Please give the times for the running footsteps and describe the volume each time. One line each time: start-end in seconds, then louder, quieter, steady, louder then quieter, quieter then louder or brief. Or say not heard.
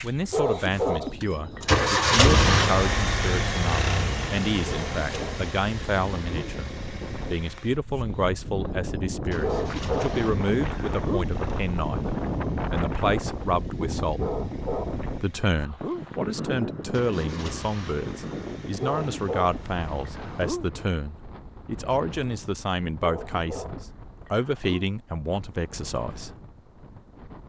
not heard.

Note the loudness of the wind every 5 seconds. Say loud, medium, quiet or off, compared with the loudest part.
medium, medium, loud, medium, quiet, quiet.